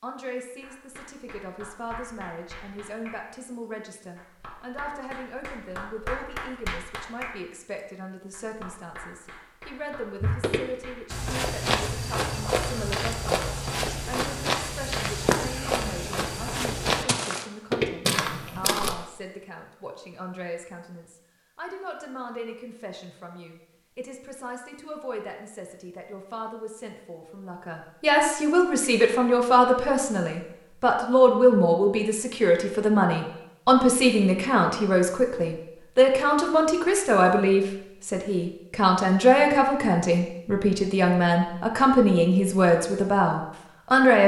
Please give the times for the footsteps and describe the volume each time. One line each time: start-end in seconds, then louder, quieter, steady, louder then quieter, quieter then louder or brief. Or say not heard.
10.2-18.9 steady.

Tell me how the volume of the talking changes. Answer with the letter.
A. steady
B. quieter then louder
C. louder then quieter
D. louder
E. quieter
D.